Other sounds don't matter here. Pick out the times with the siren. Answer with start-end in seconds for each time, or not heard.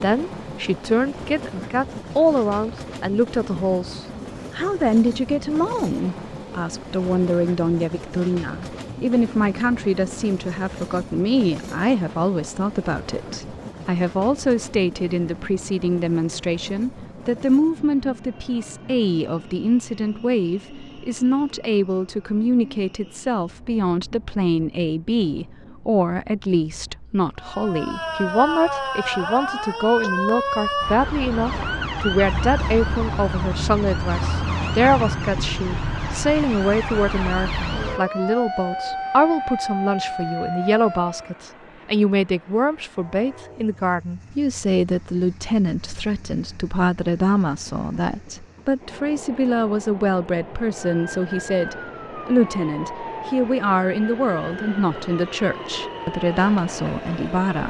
27.4-41.4, 50.8-57.6.